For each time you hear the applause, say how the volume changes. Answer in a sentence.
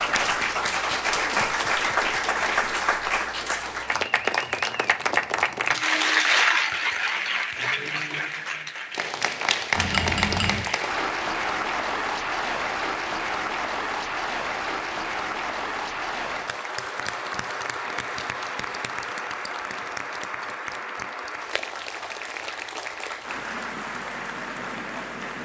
You can hear the applause from 0.0 to 25.4 s, getting quieter.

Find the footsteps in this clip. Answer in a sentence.
You can't hear the footsteps here.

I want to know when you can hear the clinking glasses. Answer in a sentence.
You can hear the clinking glasses from 9.7 to 10.7 s.